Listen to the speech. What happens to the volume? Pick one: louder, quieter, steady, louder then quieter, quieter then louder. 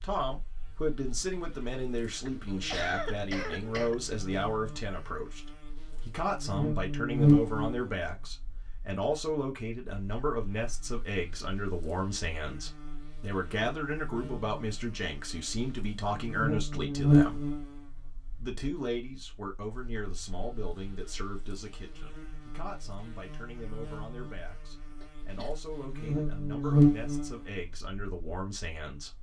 quieter.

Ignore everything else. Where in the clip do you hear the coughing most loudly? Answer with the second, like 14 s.
3 s.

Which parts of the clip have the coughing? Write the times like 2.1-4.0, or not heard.
2.5-4.0, 25.0-26.8.